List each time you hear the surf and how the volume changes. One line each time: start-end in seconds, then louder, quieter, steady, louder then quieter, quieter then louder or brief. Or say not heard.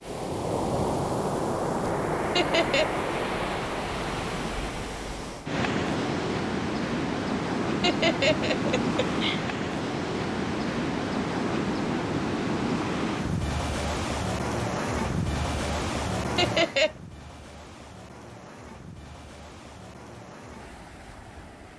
0.0-21.7 quieter.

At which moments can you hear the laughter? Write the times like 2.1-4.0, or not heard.
2.4-2.9, 7.8-9.4, 16.4-16.9.